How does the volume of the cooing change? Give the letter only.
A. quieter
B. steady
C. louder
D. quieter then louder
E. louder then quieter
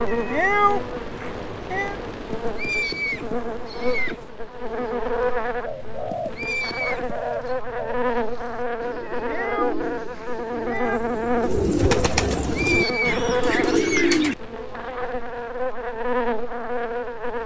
C.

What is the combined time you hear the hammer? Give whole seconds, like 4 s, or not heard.
not heard.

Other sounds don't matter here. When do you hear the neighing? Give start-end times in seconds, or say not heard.
2.3-4.2, 6.1-7.4, 12.4-14.1.